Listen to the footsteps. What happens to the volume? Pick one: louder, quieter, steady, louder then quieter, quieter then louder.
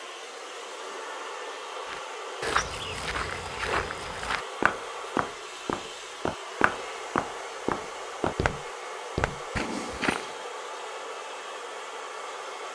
steady.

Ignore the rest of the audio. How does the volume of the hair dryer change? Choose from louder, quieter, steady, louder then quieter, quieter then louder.
steady.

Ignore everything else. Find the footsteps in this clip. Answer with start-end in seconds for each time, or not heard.
1.9-10.3.